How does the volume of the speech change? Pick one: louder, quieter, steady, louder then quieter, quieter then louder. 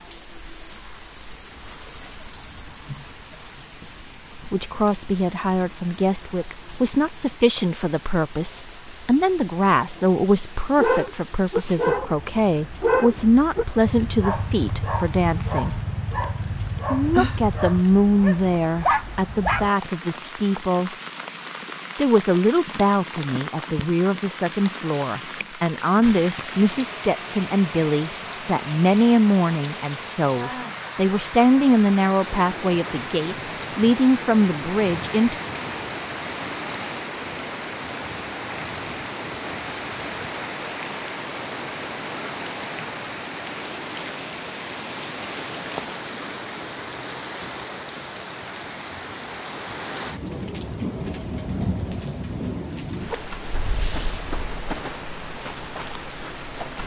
steady.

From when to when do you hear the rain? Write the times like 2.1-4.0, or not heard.
0.0-56.8.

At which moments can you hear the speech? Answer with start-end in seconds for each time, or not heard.
4.3-15.8, 16.9-20.9, 21.9-35.4.